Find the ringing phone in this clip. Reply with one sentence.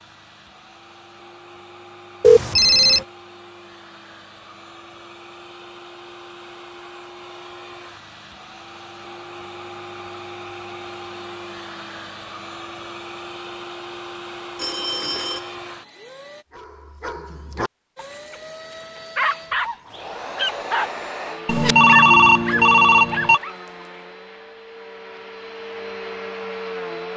You can hear the ringing phone from 2.2 to 3.0 s, from 14.6 to 15.6 s and from 21.4 to 23.4 s.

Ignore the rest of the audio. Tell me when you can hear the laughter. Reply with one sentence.
You can't hear the laughter here.